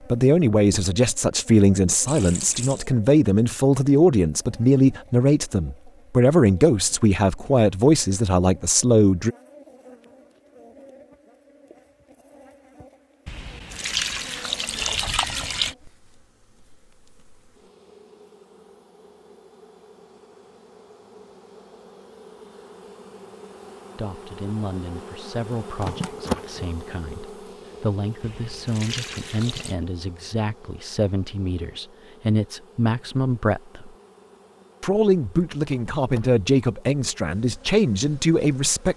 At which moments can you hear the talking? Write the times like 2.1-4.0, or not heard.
0.1-9.3, 23.9-33.9, 34.8-38.9.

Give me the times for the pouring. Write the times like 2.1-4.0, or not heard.
2.0-2.9, 13.2-15.8, 28.2-29.8.